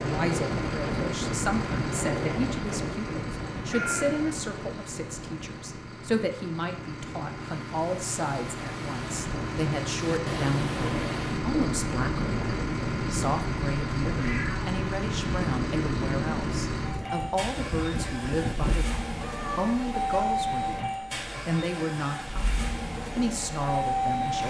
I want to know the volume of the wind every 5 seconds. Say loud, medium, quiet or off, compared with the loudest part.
loud, medium, loud, loud, off.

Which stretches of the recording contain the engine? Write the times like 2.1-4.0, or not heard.
0.0-24.4.